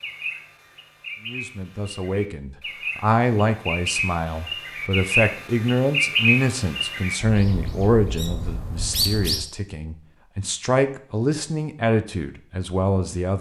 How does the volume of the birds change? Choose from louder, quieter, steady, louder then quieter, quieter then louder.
louder then quieter.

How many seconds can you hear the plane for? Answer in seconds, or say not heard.
not heard.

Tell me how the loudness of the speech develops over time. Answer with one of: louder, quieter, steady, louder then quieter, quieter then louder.
quieter then louder.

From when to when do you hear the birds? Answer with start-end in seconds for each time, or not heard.
0.0-9.4.